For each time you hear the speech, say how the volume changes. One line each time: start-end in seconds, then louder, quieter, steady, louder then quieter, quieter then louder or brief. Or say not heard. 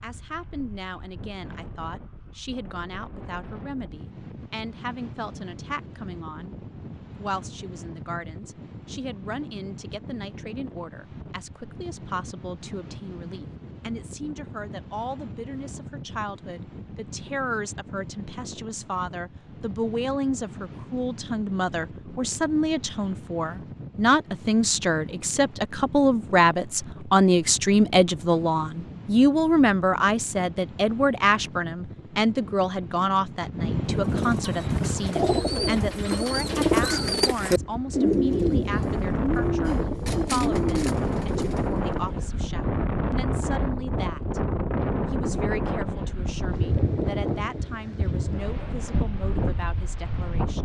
0.0-44.4 louder then quieter
45.1-50.5 steady.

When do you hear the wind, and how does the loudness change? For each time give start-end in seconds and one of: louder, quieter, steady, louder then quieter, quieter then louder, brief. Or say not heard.
0.0-50.5 louder.